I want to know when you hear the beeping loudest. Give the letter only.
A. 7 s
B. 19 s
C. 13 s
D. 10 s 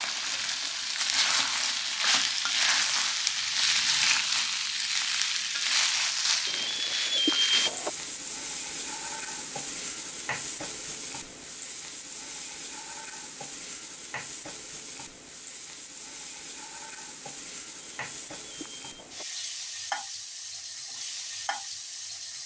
A.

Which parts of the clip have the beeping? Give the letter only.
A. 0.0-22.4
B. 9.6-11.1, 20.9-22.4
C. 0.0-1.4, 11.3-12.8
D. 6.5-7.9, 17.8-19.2
D.